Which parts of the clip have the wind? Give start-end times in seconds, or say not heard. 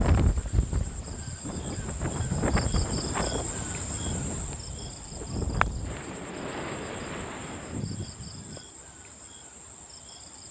0.0-8.7.